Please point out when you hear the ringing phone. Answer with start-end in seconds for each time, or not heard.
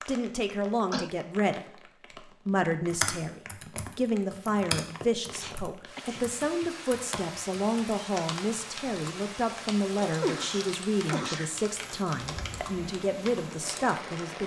not heard.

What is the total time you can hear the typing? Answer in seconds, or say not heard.
11 s.